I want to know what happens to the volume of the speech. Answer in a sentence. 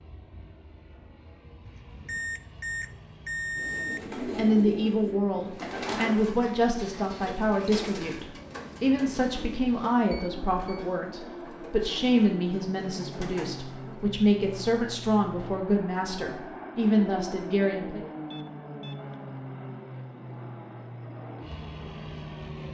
The volume of the speech stays about the same.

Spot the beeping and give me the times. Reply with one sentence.
You can hear the beeping from 1.6 to 4.2 s, from 10.1 to 10.8 s and from 18.3 to 19.1 s.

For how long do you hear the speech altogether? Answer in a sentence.
The speech can be heard for 14 seconds in total.